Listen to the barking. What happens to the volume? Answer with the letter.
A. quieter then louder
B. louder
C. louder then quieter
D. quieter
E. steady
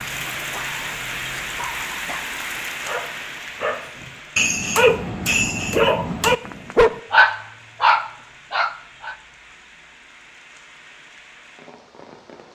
B.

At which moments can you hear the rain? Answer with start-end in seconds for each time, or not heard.
0.0-12.5.